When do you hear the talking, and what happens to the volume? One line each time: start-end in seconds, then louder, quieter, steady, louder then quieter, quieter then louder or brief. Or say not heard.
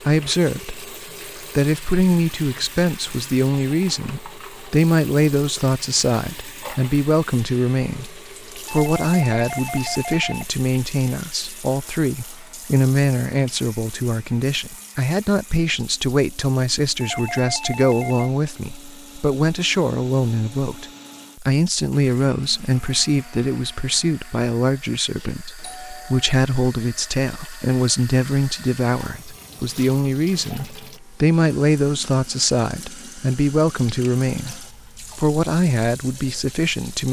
0.1-37.0 steady.